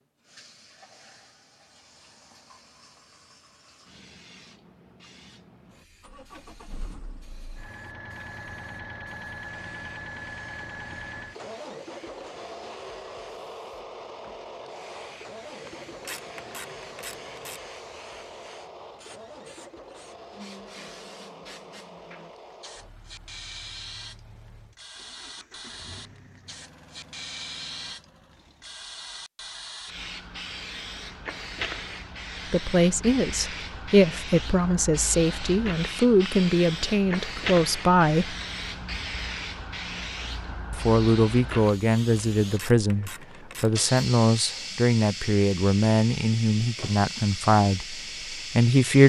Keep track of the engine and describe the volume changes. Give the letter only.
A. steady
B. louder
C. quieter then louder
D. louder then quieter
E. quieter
E.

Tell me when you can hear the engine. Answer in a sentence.
You can hear the engine from 5.7 to 28.8 s.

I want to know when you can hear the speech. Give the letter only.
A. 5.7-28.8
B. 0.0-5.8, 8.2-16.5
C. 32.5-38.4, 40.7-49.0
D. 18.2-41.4
C.